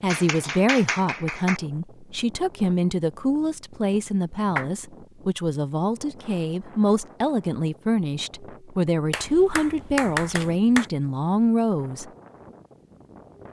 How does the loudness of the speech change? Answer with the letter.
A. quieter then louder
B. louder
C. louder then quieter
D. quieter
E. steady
E.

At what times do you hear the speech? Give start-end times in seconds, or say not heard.
0.0-12.1.